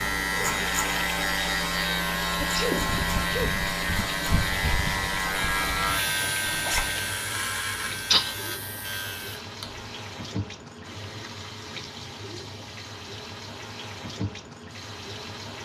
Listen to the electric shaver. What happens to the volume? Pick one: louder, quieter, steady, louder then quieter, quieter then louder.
quieter.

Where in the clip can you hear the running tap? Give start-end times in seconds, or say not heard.
0.0-15.6.